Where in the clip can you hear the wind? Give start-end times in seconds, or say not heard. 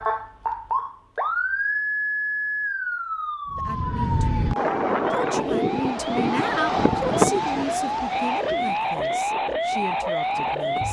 3.5-10.8.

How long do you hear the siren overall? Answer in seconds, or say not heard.
11 s.